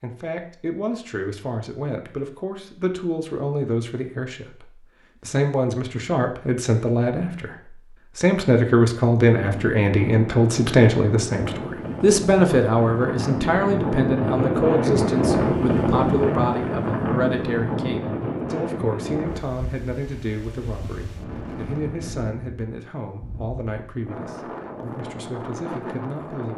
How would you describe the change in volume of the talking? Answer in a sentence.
The volume of the talking goes up, then down.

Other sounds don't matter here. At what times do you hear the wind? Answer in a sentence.
The wind can be heard from 9.4 to 26.5 s.